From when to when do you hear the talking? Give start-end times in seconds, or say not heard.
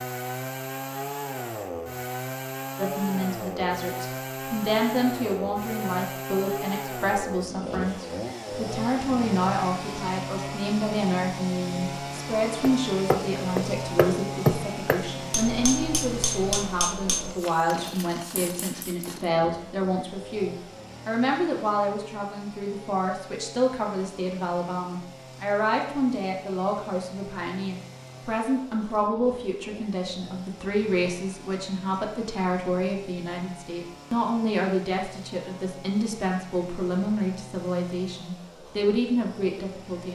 2.8-40.1.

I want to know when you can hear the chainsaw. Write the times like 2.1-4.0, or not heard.
0.0-40.1.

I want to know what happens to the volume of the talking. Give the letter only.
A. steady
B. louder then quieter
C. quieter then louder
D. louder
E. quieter
A.